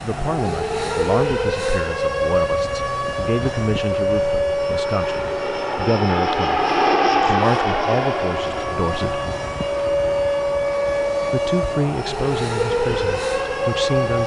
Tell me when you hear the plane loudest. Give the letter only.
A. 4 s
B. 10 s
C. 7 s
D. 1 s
C.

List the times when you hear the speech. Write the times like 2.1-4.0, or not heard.
0.0-9.2, 11.3-14.2.